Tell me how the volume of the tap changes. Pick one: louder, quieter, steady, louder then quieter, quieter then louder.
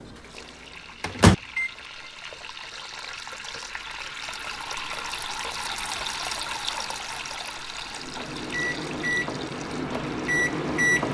louder then quieter.